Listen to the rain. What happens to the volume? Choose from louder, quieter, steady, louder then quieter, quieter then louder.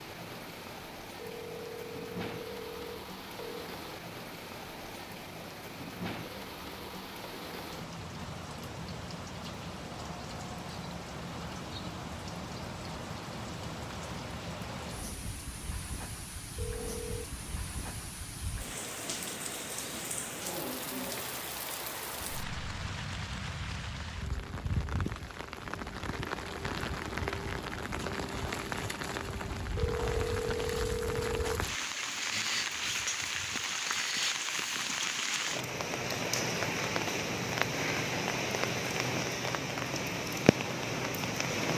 louder.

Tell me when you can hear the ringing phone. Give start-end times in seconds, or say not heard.
1.1-3.6, 16.6-17.2, 29.8-31.6.